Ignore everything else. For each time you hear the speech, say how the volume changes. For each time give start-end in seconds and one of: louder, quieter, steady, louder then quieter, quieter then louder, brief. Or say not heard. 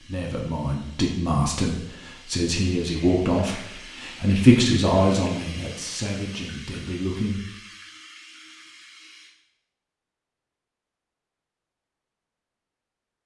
0.0-7.5 louder then quieter.